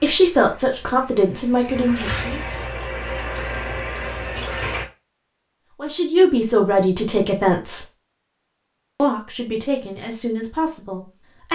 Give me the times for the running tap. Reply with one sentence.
The running tap can be heard from 0.1 to 4.8 s.